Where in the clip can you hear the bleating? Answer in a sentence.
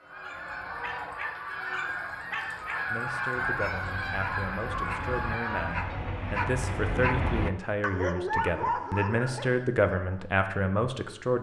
You can't hear the bleating here.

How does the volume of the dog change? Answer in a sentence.
The loudness of the dog goes up.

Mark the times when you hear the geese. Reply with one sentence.
The geese can be heard from 0.0 to 5.8 s.